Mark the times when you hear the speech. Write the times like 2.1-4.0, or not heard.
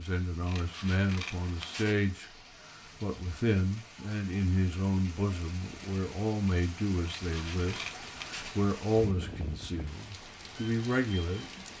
0.0-2.3, 3.0-11.6.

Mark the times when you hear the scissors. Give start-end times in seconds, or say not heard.
0.5-1.9, 7.0-8.6.